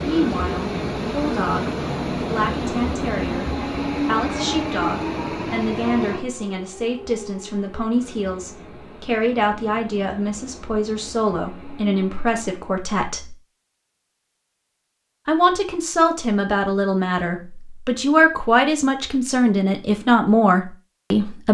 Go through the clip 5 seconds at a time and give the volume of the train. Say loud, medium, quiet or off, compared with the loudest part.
loud, medium, quiet, off, off.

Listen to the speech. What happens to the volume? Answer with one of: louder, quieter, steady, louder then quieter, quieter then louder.
louder.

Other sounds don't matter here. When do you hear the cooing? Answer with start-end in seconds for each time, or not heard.
not heard.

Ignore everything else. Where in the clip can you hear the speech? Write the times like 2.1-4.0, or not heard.
0.0-13.3, 15.2-21.5.